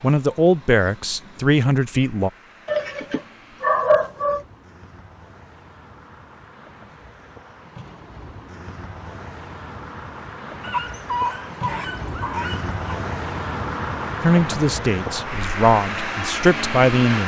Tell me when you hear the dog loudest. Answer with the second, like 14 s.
4 s.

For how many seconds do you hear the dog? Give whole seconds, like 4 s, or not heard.
4 s.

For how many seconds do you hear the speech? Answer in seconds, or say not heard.
5 s.